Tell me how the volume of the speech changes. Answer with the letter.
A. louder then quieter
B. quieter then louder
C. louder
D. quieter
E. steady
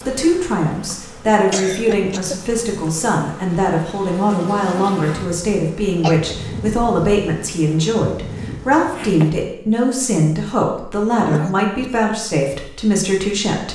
E.